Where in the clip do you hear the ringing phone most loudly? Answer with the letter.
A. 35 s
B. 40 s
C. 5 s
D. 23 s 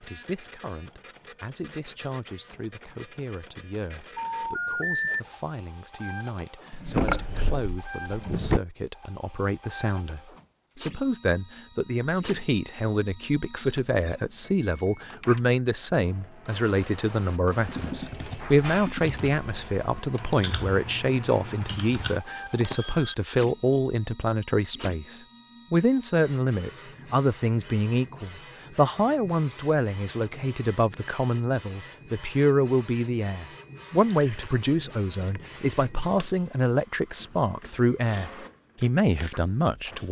C.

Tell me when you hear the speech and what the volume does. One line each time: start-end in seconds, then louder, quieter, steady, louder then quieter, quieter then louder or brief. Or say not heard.
0.0-40.0 louder.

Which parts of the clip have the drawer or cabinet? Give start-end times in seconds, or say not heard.
6.7-8.6.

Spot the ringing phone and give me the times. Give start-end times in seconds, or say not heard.
4.2-5.2, 22.0-23.1, 34.0-34.5, 35.4-35.9.